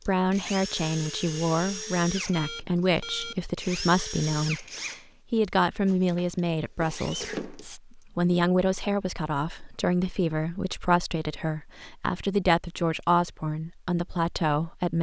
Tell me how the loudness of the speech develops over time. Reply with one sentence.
The volume of the speech stays about the same.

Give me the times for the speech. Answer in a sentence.
You can hear the speech from 0.1 to 14.9 s.